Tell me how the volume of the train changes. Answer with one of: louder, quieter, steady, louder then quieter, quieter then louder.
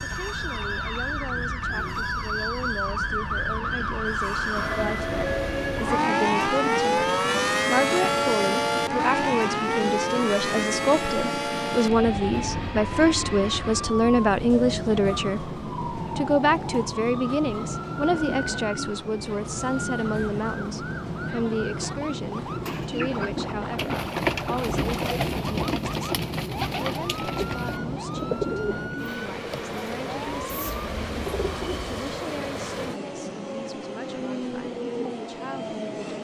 steady.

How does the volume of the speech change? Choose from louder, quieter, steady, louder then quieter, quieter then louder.
louder then quieter.